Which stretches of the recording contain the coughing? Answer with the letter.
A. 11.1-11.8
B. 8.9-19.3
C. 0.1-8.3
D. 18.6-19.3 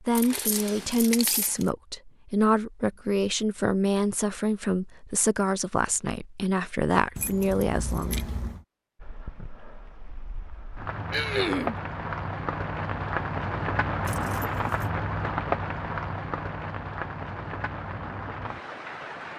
A.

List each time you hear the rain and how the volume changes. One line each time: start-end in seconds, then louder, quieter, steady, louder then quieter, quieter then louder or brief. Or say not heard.
8.9-19.3 louder then quieter.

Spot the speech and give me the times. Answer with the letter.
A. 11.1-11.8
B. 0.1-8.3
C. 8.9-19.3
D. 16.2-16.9
B.